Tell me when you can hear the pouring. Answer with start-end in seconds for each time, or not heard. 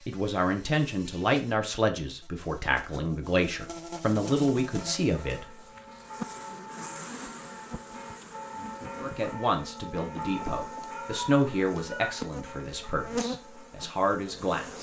not heard.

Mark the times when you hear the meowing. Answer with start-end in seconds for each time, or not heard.
10.9-12.2.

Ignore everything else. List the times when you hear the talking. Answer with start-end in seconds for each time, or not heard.
0.1-5.5, 9.0-14.7.